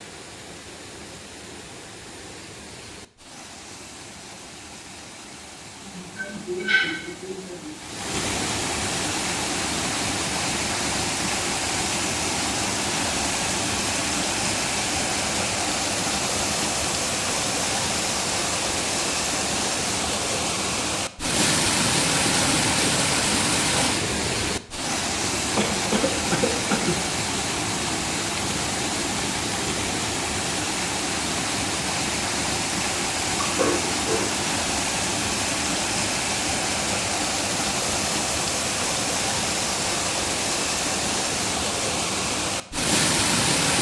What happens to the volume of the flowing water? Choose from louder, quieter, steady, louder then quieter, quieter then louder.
louder.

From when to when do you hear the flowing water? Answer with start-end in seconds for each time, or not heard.
0.0-43.7.